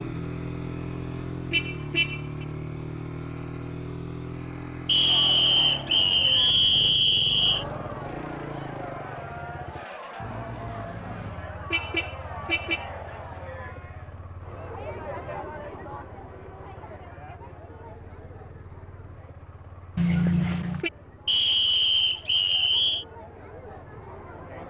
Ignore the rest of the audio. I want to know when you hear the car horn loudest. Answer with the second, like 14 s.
20 s.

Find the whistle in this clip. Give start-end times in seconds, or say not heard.
4.8-7.7, 21.2-23.1.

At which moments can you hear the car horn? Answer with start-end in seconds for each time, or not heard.
1.5-2.5, 10.8-12.8, 19.9-20.9.